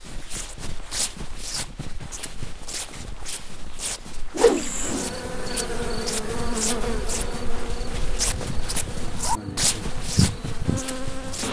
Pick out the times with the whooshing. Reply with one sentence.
The whooshing can be heard from 4.3 to 5.1 s.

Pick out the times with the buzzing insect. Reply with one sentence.
The buzzing insect can be heard from 4.5 to 11.4 s.